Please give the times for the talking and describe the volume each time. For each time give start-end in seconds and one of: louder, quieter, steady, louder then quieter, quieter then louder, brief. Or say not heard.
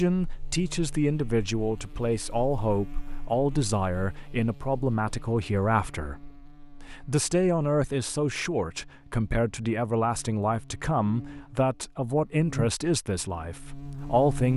0.0-14.5 steady.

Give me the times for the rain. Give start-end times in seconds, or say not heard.
not heard.